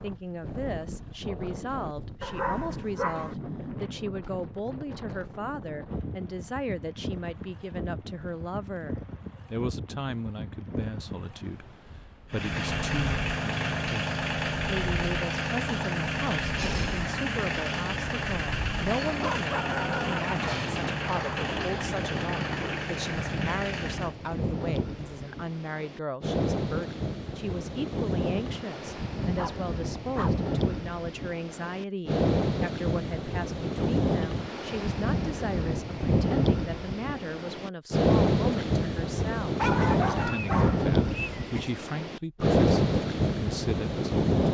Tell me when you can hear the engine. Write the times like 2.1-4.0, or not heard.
12.3-24.1.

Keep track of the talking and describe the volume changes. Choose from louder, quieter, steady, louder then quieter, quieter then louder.
steady.